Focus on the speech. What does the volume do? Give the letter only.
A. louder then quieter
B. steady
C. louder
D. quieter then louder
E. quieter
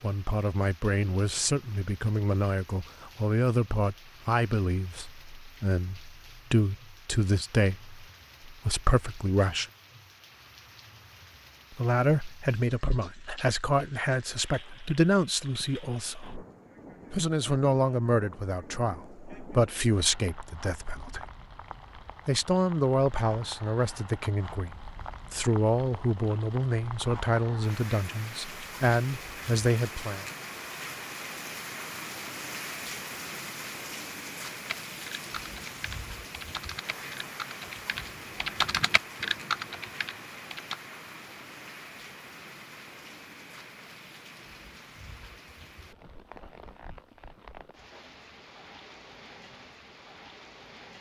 B.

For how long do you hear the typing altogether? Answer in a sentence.
You can hear the typing for 6 seconds altogether.